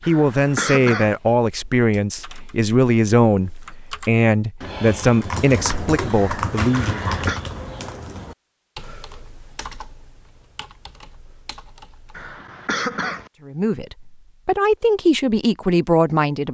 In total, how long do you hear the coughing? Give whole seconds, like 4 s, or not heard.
3 s.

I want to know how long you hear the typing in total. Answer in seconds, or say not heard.
11 s.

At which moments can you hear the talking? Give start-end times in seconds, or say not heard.
0.1-7.0, 13.4-16.4.